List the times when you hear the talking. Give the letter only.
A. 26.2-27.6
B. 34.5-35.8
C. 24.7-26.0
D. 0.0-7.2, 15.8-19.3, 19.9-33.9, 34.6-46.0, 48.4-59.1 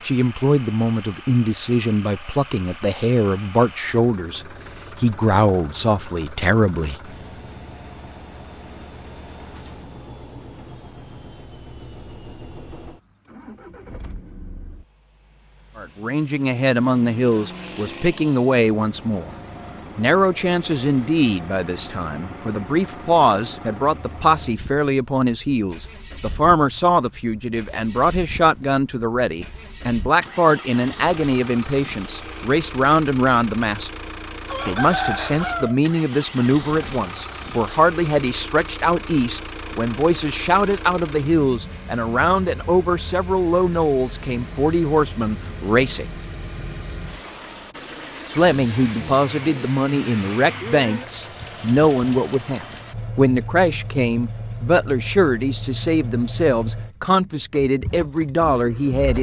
D.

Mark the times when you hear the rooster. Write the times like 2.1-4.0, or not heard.
34.5-35.8.